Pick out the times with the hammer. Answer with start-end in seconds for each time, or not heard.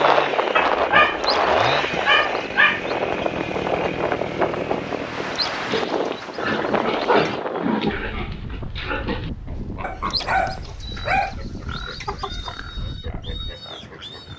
not heard.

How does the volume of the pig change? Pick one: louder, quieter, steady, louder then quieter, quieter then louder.
quieter.